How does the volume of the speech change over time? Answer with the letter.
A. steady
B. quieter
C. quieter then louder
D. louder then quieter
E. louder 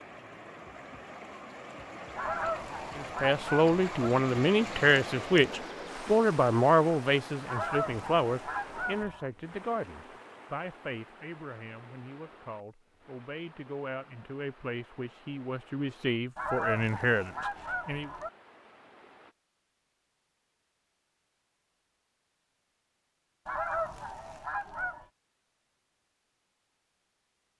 C.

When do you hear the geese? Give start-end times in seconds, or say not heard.
2.1-4.1, 7.5-9.3, 16.4-18.3, 23.4-25.1.